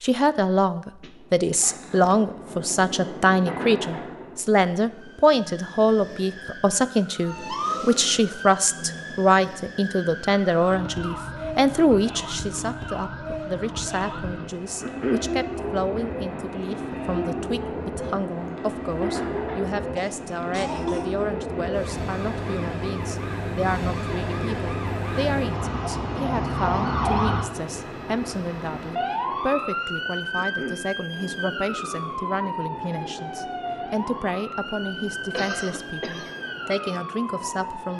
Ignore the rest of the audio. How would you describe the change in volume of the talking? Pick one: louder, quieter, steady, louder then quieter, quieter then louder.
quieter.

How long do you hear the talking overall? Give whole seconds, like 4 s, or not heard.
38 s.